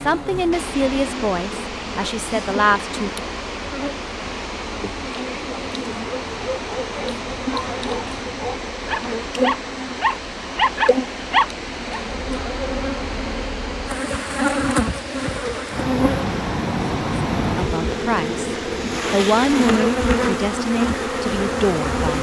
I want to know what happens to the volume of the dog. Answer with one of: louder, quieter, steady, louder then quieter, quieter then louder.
louder.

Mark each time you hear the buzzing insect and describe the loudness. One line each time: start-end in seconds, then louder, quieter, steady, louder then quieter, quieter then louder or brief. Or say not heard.
0.0-22.1 louder.